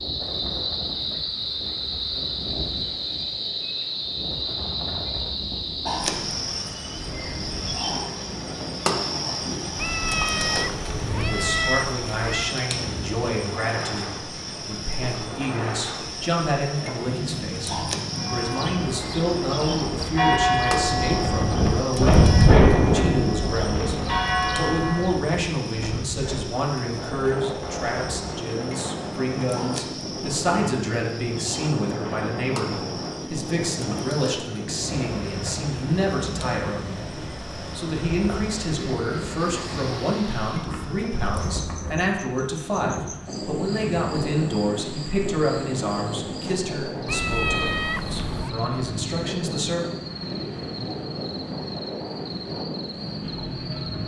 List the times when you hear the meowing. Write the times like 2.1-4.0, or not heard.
9.8-12.6, 47.0-48.5.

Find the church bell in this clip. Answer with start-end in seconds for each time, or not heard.
18.1-25.1.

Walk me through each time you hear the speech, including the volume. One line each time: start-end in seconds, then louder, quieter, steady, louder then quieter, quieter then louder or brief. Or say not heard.
10.9-49.9 steady.